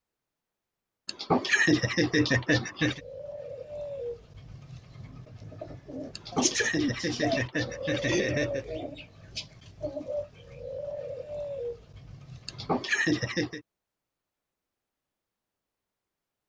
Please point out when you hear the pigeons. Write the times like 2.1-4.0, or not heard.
2.8-12.8.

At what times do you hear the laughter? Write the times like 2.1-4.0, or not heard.
1.1-3.0, 6.2-8.7, 12.4-13.6.